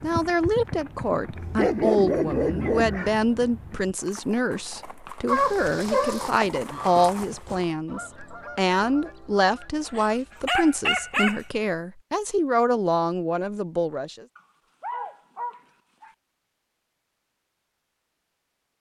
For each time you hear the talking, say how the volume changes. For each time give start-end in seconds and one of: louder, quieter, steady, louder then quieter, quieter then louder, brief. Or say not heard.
0.0-14.2 steady.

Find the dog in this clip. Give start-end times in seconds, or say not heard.
1.4-3.1, 5.2-6.3, 9.9-11.4, 14.3-16.1.